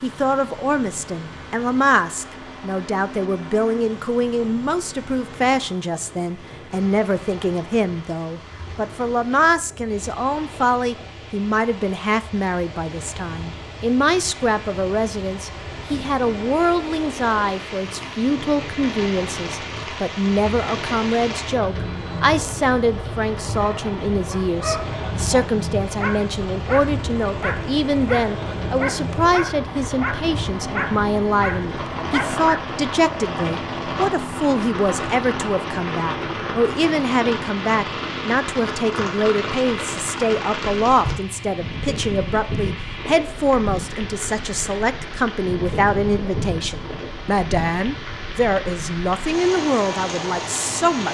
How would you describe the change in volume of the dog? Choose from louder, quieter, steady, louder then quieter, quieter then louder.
steady.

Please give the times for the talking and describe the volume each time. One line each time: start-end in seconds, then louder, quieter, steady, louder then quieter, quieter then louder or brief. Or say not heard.
0.0-51.1 steady.